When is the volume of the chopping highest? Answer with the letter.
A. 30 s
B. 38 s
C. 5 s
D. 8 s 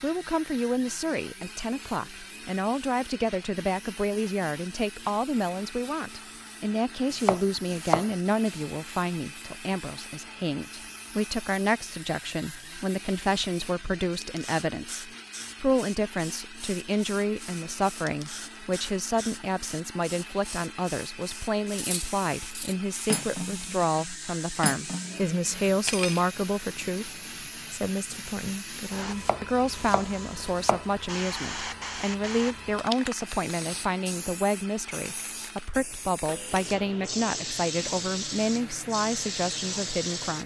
D.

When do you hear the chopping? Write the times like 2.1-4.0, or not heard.
7.1-8.6, 29.1-30.9.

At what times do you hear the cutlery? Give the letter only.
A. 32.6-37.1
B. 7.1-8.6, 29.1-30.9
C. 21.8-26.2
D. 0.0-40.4
C.